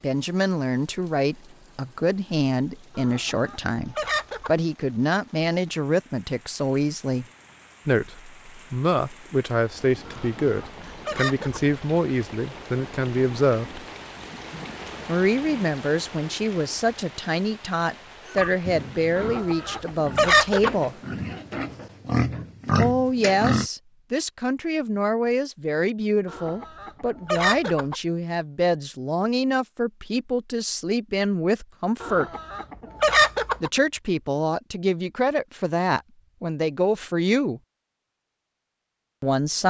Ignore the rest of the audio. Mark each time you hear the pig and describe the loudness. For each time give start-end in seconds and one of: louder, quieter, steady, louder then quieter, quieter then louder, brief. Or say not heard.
18.4-23.6 louder.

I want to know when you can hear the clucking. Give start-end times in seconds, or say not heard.
3.0-4.5, 10.1-11.6, 19.1-20.8, 26.2-27.9, 32.0-33.7.